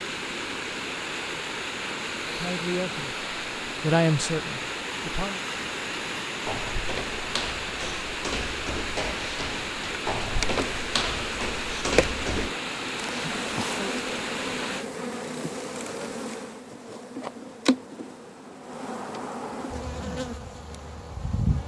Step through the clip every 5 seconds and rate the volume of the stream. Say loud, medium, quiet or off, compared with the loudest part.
loud, loud, loud, off, off.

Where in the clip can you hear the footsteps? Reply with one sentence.
You can hear the footsteps from 6.5 to 12.5 s.